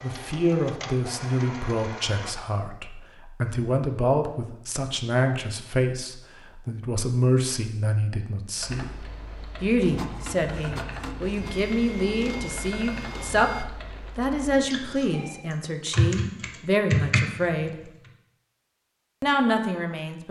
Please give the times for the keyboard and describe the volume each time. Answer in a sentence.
The keyboard can be heard from 8.6 to 17.5 s, getting louder.